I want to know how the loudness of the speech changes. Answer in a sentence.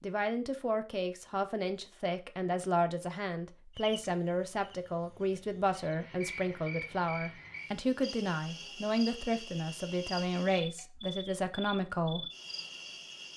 The volume of the speech stays about the same.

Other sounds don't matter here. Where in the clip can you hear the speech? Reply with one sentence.
The speech can be heard from 0.0 to 12.3 s.